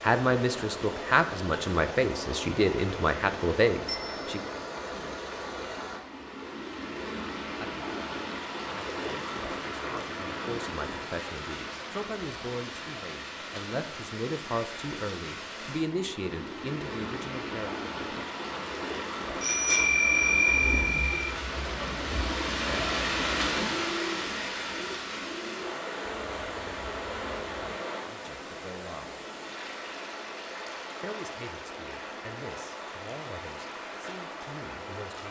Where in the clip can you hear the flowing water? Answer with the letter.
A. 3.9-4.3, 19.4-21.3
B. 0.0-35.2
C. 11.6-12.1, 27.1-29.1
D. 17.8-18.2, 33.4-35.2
B.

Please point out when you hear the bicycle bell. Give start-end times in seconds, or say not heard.
3.9-4.3, 19.4-21.3.